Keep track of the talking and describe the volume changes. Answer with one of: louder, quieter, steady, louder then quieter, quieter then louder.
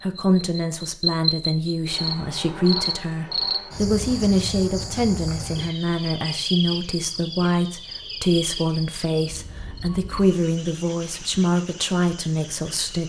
steady.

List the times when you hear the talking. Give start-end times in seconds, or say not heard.
0.0-13.0.